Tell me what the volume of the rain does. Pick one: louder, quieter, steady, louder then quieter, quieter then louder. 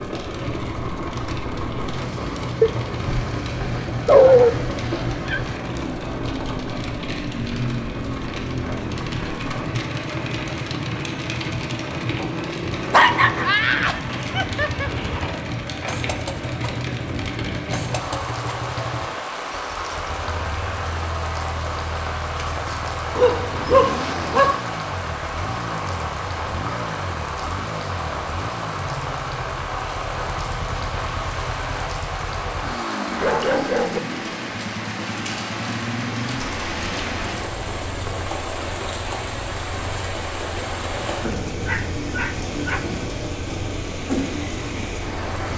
steady.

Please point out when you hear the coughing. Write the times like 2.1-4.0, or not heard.
not heard.